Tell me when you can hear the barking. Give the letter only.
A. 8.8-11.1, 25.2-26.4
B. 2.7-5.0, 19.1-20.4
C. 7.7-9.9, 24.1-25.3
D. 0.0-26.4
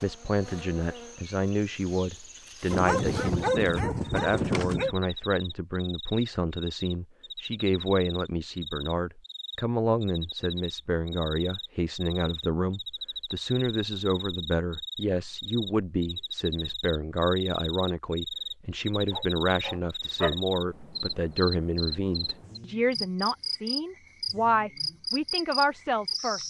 B.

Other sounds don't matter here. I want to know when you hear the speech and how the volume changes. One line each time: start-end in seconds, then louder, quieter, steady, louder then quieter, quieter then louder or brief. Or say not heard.
0.0-26.4 steady.